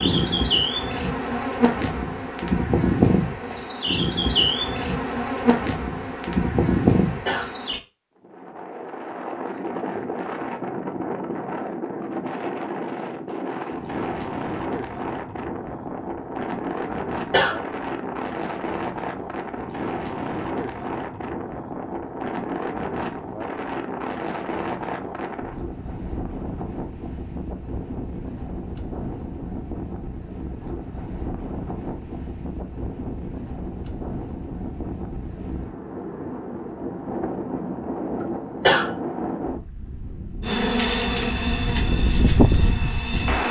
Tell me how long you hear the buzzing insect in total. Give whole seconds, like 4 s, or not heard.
11 s.